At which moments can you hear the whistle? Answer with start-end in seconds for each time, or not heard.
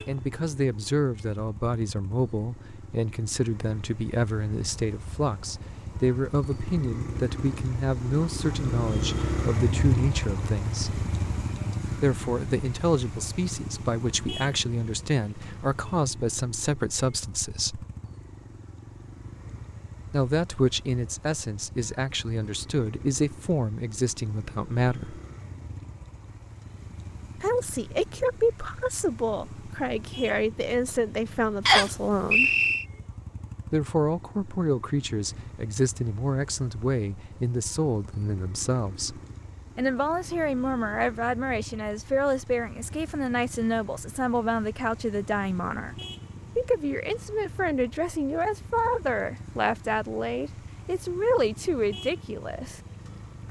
31.6-32.9.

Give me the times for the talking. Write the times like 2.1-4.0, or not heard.
0.1-11.1, 11.9-17.9, 20.1-25.2, 27.4-32.5, 33.7-46.0, 46.5-52.8.